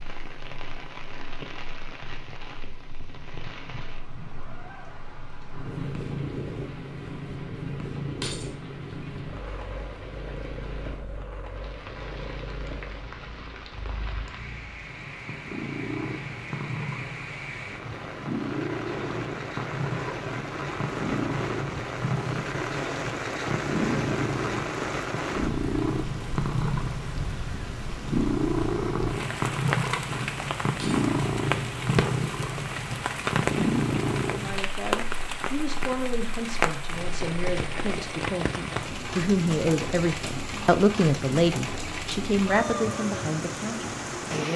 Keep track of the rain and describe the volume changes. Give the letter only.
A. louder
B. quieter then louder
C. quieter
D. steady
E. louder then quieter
A.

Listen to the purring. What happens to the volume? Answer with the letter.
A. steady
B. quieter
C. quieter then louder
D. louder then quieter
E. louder
E.